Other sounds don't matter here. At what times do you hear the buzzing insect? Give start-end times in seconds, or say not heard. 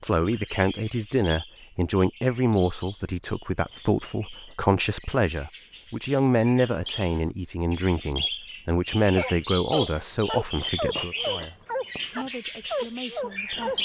not heard.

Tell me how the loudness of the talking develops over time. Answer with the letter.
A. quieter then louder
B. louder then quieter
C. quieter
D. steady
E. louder
C.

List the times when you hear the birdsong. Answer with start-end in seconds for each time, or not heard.
0.0-13.7.